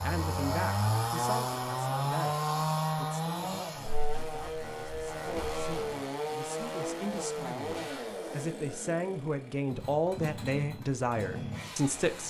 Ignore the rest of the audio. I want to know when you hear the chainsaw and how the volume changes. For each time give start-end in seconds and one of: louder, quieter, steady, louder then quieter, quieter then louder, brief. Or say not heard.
0.0-12.2 quieter.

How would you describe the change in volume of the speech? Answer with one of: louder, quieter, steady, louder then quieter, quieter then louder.
quieter then louder.